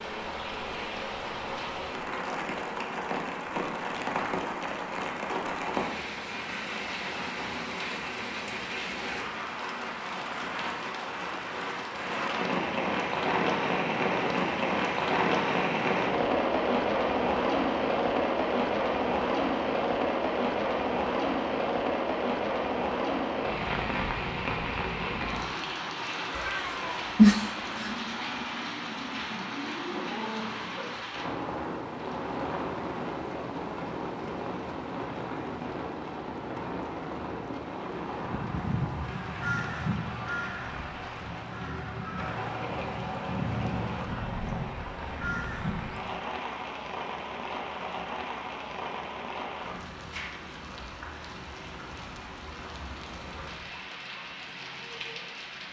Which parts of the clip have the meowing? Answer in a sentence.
You can hear the meowing from 26.4 to 27.9 s.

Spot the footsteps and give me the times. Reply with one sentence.
You can't hear the footsteps here.